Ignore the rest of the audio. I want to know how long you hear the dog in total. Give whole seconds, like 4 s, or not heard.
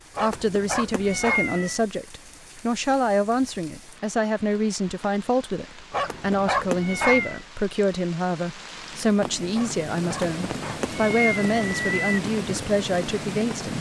4 s.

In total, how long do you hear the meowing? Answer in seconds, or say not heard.
5 s.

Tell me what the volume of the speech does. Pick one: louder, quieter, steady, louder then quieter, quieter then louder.
steady.